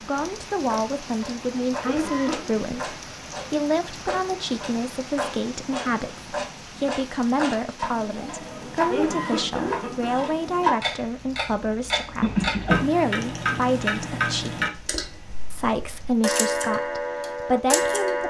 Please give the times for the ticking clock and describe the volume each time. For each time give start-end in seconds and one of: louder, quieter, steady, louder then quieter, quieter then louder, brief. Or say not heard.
0.0-18.2 louder.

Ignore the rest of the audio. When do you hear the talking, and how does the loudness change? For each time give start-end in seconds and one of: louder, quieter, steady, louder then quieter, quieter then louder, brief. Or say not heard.
0.0-14.7 steady
15.5-18.2 brief.